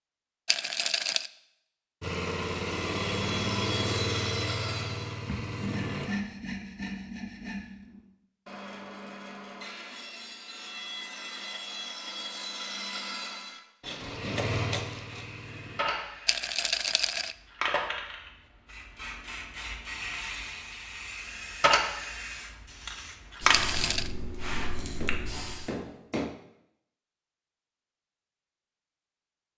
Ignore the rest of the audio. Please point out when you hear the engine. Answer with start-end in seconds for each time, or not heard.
2.0-6.1, 13.9-15.8.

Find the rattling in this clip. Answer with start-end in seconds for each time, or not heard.
0.5-1.3, 16.2-17.4, 23.5-24.1.